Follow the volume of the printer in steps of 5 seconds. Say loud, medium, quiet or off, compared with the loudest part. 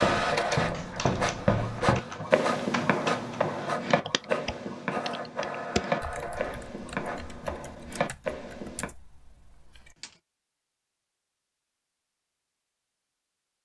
loud, medium, off.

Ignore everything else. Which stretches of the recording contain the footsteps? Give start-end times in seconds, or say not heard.
0.0-8.9.